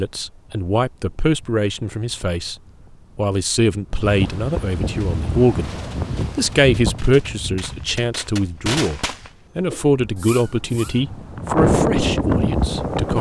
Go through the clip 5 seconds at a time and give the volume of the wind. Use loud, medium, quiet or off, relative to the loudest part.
quiet, medium, loud.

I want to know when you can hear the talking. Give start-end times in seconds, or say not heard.
0.0-2.5, 3.1-5.7, 6.3-13.1.